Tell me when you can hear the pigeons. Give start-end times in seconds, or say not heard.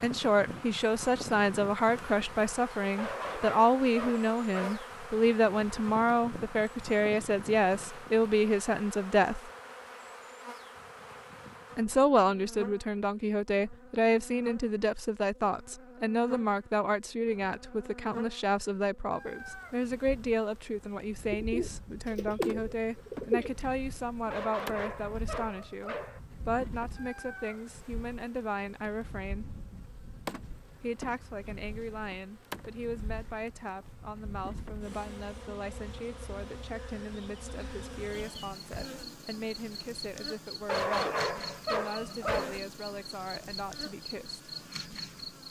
21.3-23.6.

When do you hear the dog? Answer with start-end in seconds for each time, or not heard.
3.0-4.9, 24.3-26.2, 40.6-42.6.